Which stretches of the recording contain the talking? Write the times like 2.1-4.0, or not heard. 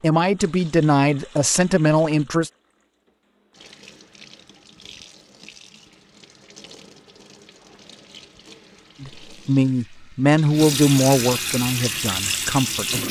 0.0-2.5, 9.0-13.0.